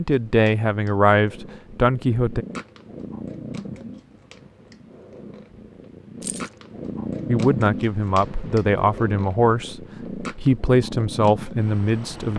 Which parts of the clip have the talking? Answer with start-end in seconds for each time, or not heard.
0.0-2.5, 7.2-12.3.